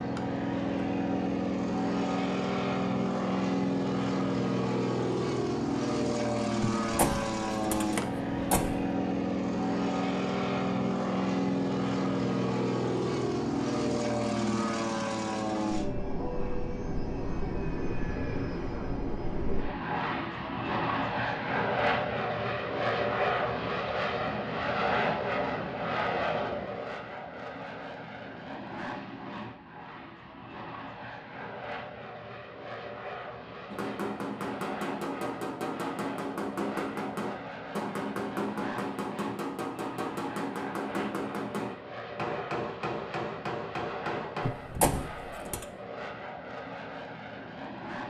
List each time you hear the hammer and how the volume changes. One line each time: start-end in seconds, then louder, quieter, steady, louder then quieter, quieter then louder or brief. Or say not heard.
33.7-44.5 steady.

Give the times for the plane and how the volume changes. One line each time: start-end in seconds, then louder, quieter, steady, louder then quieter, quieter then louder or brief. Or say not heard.
0.0-48.0 quieter.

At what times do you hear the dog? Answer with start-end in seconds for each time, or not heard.
not heard.